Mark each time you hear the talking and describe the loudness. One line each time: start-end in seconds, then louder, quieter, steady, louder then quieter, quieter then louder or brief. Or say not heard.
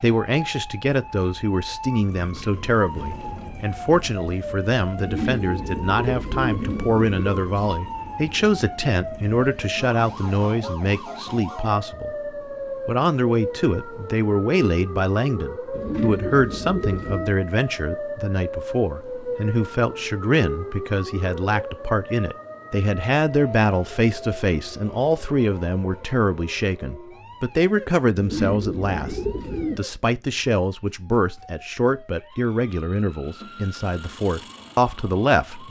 0.0-35.6 steady.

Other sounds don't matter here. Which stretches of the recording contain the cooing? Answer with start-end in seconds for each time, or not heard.
5.0-7.8, 15.7-17.4, 28.1-29.9.